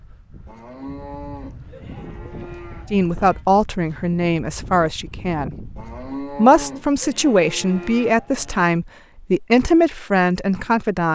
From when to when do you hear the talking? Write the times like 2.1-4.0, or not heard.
2.9-11.1.